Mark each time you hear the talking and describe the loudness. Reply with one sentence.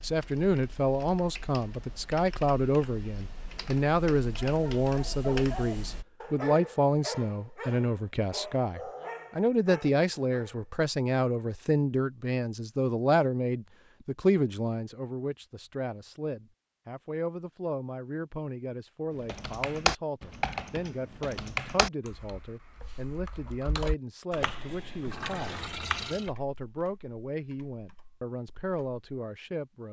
The talking can be heard from 0.0 to 29.8 s, getting quieter.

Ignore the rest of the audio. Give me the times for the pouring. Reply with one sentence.
You can hear the pouring from 25.1 to 26.4 s.